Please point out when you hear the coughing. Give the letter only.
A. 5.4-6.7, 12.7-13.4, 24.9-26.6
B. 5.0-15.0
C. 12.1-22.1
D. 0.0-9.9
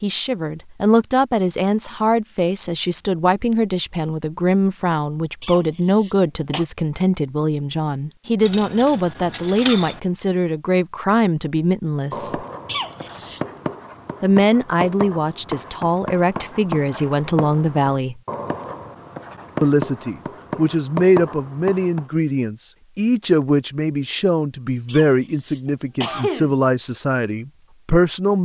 A.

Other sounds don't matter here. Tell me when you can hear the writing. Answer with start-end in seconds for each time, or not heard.
12.1-22.1.